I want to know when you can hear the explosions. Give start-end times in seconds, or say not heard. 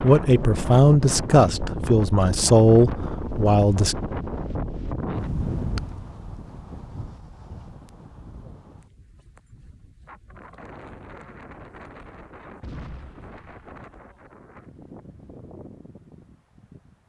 12.6-13.8.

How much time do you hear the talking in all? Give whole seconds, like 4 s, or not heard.
4 s.